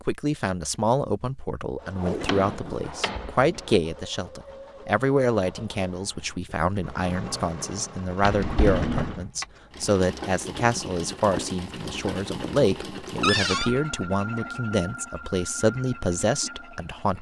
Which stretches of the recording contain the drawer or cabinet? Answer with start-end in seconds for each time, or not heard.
2.2-3.8, 8.2-9.2, 13.2-13.7.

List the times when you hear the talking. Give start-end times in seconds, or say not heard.
0.0-17.1.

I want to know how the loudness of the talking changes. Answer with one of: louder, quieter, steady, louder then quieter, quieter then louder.
steady.